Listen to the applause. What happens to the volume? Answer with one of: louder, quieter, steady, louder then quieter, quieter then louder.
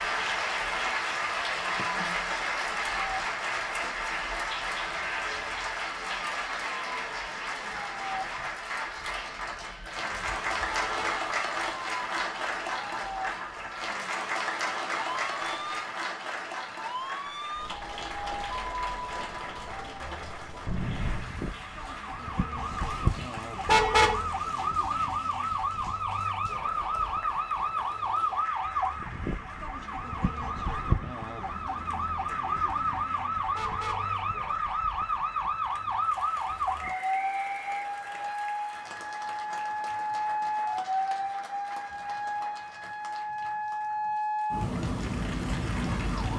quieter.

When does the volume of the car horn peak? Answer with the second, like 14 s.
24 s.